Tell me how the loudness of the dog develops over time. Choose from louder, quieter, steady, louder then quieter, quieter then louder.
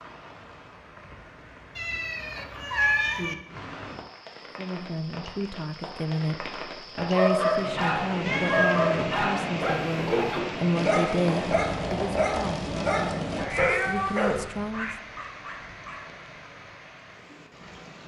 quieter.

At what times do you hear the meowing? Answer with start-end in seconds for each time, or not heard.
1.8-3.4, 8.2-8.8, 13.3-14.9.